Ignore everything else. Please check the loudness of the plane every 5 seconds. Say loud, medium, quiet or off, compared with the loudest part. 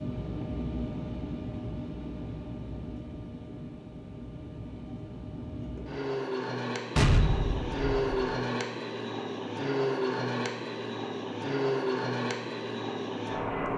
medium, loud, loud.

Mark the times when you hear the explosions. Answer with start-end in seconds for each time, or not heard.
7.0-8.3.